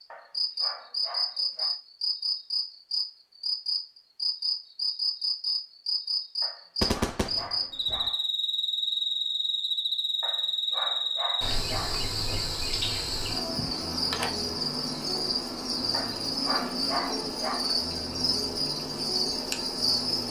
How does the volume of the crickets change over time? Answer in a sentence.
The loudness of the crickets stays about the same.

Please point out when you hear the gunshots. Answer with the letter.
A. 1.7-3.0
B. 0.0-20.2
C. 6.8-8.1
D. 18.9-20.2
C.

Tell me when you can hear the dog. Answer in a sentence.
You can hear the dog from 0.1 to 1.8 s, from 6.4 to 8.2 s, from 10.2 to 12.1 s and from 15.9 to 17.7 s.